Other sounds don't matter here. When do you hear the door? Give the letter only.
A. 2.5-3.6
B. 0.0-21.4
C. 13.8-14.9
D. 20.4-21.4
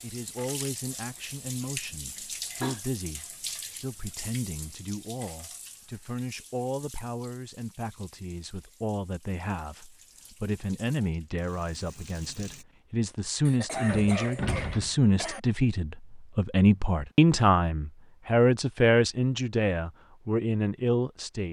C.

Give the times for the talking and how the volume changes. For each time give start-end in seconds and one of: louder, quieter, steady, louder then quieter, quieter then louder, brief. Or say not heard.
0.0-21.4 louder.